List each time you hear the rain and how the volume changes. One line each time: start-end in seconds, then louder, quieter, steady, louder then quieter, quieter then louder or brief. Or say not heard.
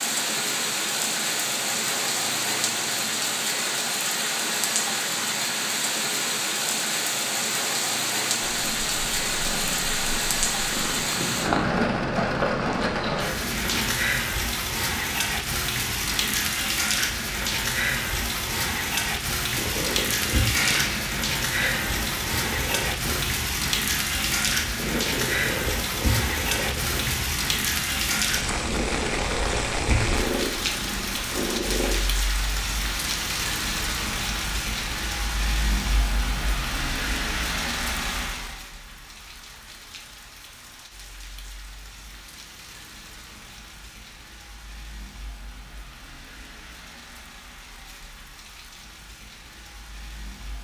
0.0-50.6 quieter.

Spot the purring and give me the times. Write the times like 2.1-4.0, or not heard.
8.4-13.9, 19.5-31.9.